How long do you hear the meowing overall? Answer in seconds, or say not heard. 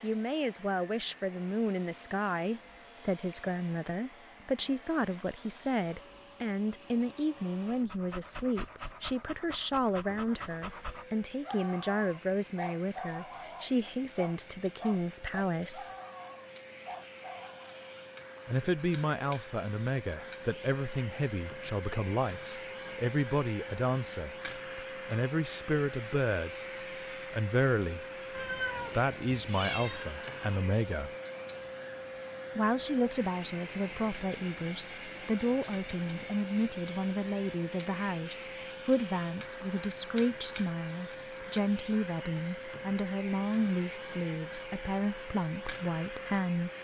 2 s.